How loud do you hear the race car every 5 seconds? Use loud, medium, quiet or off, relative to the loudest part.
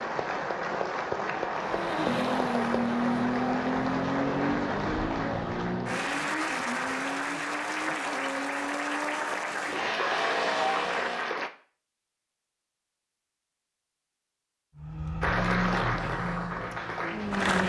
loud, medium, loud, loud.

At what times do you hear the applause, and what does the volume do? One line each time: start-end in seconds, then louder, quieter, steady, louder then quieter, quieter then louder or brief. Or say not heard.
0.0-11.5 steady
15.2-17.6 brief.